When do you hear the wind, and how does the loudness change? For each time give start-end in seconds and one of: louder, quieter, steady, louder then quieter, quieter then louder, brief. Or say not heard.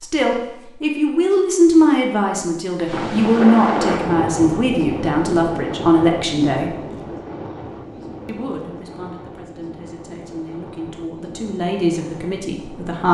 2.9-13.0 quieter.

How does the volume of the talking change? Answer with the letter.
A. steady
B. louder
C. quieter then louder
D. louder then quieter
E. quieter
C.